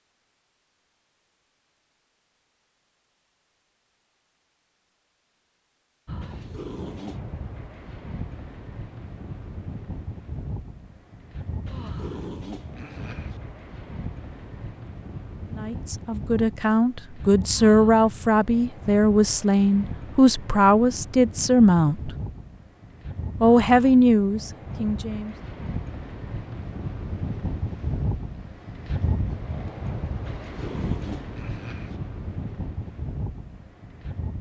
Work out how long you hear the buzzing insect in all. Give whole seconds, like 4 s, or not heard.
not heard.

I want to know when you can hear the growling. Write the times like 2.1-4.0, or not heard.
6.2-7.2, 11.7-13.4, 30.2-32.0.